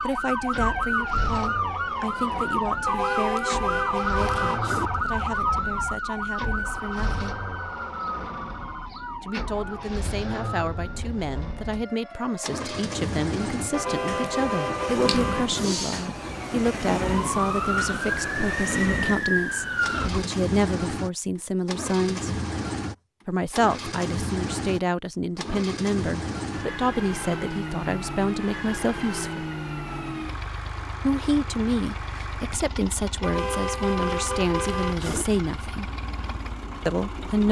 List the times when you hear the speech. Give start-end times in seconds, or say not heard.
0.0-7.3, 9.2-22.3, 23.2-29.4, 31.0-35.9, 36.9-37.4.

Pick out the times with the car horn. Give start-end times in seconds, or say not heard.
2.9-4.9, 13.7-15.8, 33.2-35.2.